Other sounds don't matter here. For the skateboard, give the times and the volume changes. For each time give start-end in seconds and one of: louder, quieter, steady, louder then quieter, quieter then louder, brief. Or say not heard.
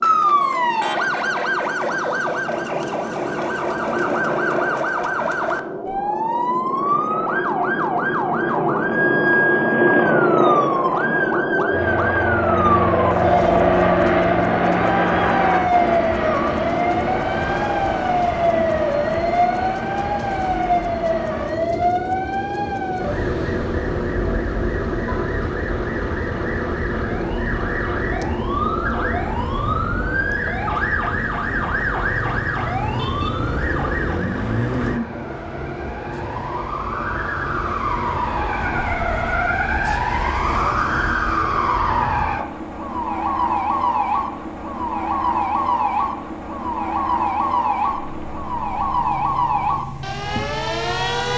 not heard.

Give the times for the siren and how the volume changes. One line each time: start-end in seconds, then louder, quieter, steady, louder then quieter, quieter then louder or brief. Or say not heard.
0.0-51.3 steady.